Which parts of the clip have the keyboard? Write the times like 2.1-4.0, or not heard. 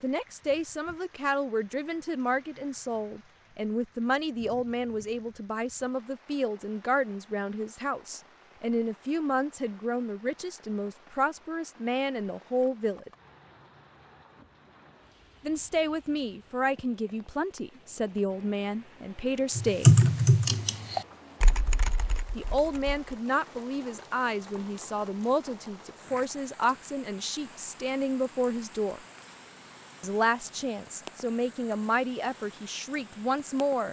19.6-23.0.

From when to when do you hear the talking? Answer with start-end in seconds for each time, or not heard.
0.0-13.1, 15.4-20.0, 22.4-29.0, 30.0-33.8.